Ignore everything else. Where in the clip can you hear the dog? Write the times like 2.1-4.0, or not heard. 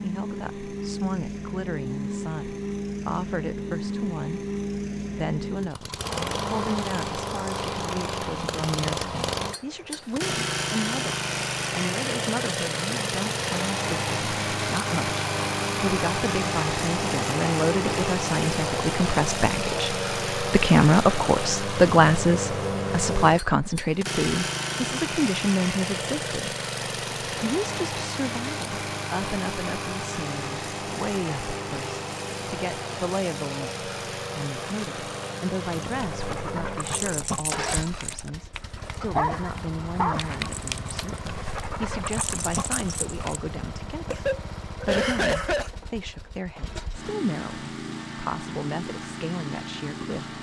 35.7-43.4.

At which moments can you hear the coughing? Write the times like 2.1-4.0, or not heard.
44.1-45.7.